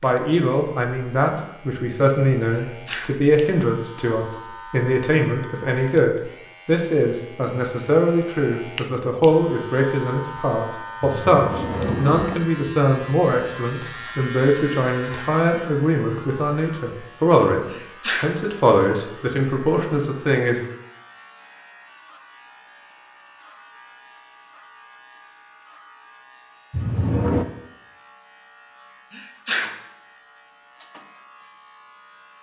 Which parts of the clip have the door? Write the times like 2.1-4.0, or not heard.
11.0-12.3, 26.7-27.4.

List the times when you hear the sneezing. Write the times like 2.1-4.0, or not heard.
2.5-3.2, 17.7-18.4, 29.1-29.8.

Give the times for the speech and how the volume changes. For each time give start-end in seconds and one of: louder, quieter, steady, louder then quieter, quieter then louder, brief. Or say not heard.
0.0-20.6 steady.